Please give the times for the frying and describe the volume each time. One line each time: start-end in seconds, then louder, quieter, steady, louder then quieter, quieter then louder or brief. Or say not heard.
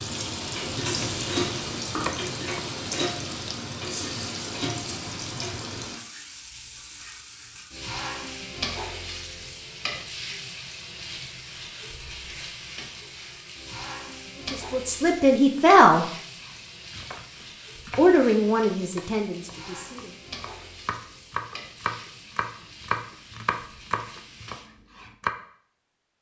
0.0-24.7 quieter.